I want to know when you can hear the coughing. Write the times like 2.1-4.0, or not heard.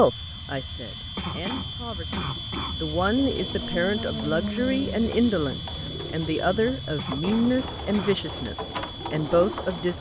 1.1-2.8, 7.0-8.2.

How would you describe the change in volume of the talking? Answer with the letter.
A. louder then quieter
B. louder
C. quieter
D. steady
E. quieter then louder
B.